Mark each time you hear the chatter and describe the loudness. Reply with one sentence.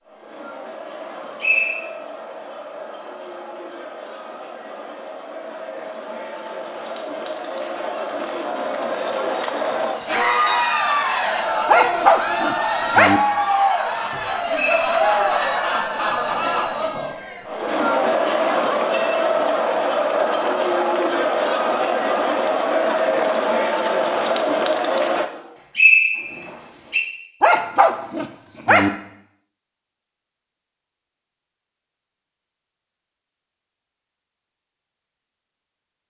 The chatter can be heard from 0.0 to 25.2 s, getting louder.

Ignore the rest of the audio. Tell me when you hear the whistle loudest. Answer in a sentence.
The volume of the whistle peaks at 26 seconds.